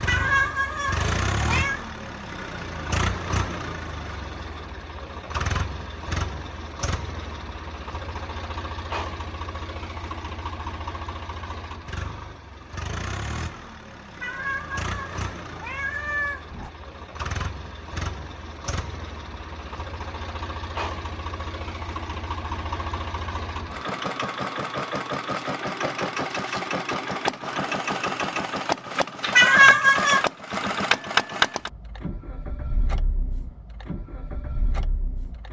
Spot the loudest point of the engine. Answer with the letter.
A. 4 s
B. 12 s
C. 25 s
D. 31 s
D.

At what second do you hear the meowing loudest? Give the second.
30 s.